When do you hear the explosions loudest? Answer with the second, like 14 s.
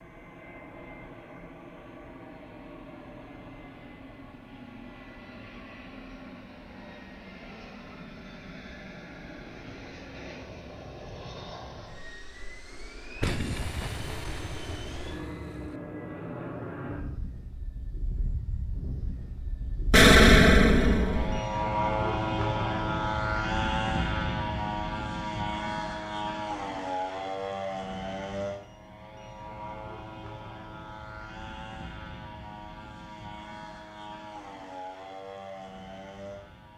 20 s.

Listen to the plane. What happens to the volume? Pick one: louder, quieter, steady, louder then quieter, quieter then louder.
louder then quieter.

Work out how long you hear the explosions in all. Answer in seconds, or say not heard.
4 s.